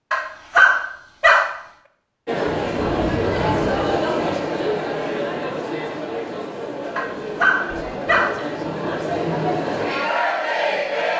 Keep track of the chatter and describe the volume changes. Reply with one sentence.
The loudness of the chatter goes down, then up.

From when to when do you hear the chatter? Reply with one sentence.
The chatter can be heard from 2.2 to 11.1 s.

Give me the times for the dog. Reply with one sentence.
The dog can be heard from 0.1 to 1.6 s and from 7.0 to 8.4 s.